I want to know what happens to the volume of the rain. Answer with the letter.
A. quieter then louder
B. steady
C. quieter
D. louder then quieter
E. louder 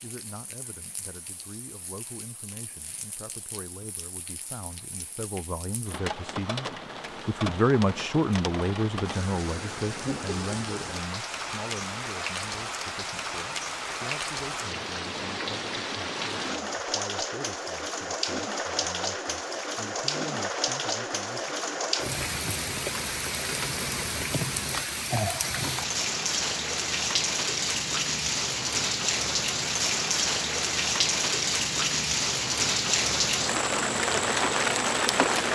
E.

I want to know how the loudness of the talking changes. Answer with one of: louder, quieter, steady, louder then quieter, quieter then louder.
louder then quieter.